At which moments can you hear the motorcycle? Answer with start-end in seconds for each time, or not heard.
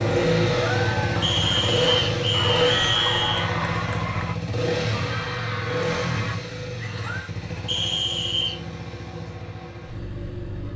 0.0-10.7.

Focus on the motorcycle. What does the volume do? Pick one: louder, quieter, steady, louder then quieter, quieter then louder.
quieter.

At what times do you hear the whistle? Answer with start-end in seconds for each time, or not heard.
1.2-3.5, 7.7-8.6.